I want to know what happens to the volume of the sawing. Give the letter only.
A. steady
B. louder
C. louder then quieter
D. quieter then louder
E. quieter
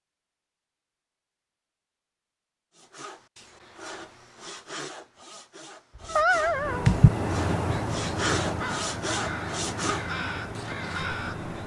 B.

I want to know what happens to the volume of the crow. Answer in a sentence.
The loudness of the crow goes down.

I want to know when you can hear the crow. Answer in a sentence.
The crow can be heard from 6.5 to 11.6 s.